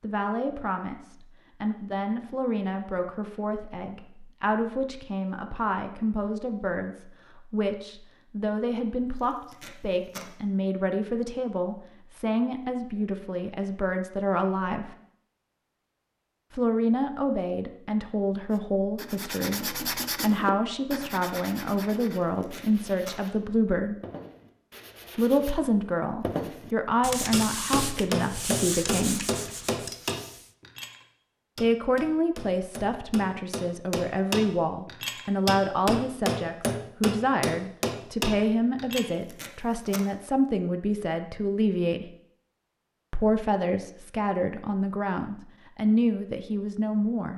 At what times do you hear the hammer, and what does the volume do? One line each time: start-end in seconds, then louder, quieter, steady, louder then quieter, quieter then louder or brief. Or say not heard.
27.3-39.0 quieter then louder.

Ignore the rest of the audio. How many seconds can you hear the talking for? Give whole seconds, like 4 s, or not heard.
41 s.